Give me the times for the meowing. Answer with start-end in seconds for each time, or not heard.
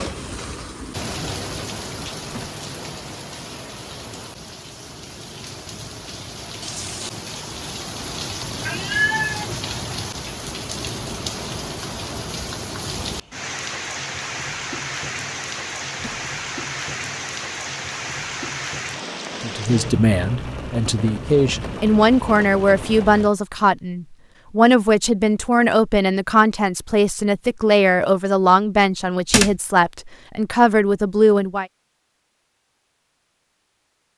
8.6-9.6.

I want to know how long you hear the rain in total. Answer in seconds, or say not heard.
23 s.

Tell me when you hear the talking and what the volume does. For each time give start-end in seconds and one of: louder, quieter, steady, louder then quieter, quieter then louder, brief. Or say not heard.
19.4-31.6 steady.